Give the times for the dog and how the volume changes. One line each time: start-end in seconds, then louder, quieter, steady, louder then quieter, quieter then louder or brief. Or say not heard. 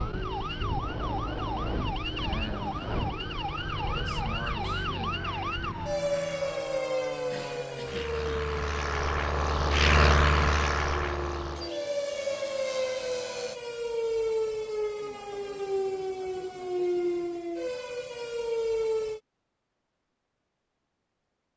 not heard.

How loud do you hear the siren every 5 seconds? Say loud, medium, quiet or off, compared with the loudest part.
loud, loud, loud, loud, off.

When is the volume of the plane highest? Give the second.
10 s.